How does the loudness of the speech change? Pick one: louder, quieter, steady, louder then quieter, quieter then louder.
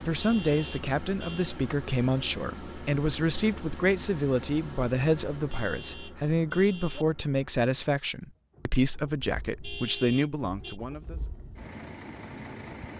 steady.